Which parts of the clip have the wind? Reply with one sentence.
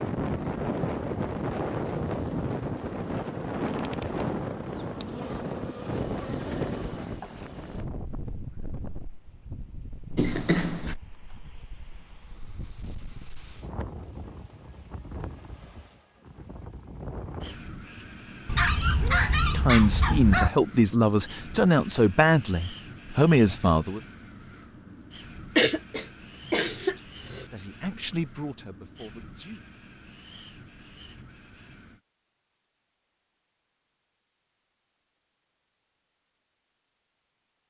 The wind can be heard from 0.0 to 32.0 s.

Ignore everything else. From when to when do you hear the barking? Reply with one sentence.
You can hear the barking from 18.4 to 20.5 s.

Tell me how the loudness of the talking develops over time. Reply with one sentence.
The volume of the talking goes down.